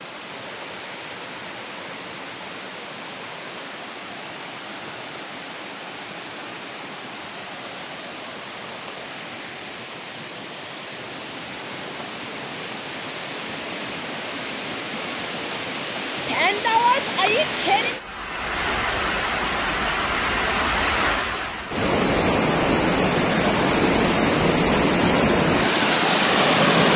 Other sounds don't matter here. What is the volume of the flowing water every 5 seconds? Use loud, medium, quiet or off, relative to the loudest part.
quiet, quiet, quiet, medium, loud, loud.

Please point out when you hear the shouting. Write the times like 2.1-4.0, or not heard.
16.2-18.0.